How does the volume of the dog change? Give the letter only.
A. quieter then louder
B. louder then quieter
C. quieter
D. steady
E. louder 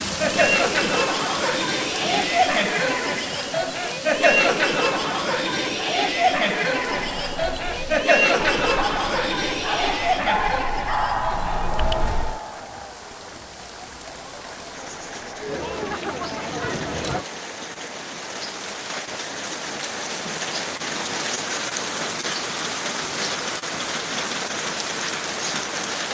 E.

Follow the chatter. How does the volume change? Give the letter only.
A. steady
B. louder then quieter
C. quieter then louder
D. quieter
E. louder
D.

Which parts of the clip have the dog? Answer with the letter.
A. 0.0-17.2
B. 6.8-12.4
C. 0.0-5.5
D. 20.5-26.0
B.